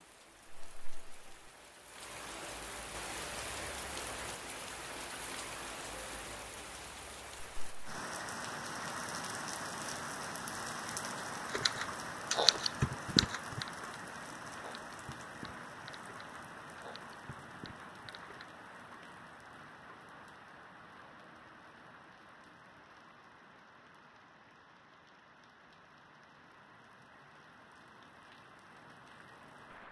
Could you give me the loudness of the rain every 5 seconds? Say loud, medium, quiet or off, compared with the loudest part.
loud, loud, loud, medium, quiet, quiet.